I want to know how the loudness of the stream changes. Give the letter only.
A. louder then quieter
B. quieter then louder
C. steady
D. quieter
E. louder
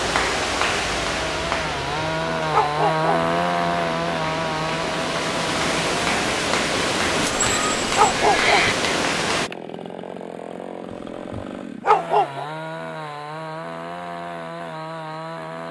B.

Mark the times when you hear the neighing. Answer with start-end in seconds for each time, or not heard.
7.2-8.8.